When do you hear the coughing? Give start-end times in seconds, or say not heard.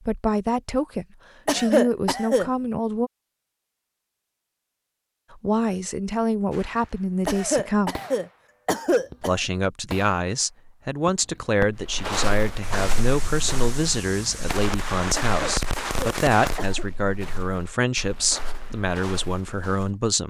1.4-2.5, 7.2-9.3, 15.2-16.9.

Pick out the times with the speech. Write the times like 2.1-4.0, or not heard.
0.1-3.1, 5.3-8.0, 9.2-20.2.